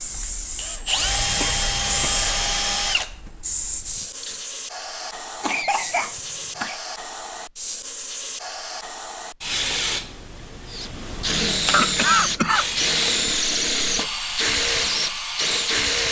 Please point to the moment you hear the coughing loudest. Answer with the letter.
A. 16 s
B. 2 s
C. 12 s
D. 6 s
C.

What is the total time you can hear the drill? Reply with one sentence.
You can hear the drill for 10 seconds altogether.